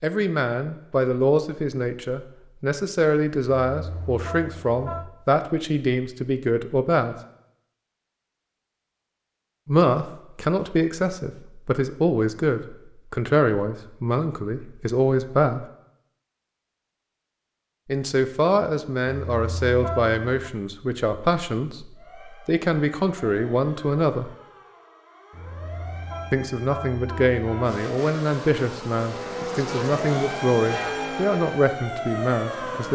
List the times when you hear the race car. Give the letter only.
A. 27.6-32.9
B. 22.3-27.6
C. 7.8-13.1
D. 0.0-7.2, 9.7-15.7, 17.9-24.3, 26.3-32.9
A.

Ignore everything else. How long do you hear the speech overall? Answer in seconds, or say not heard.
26 s.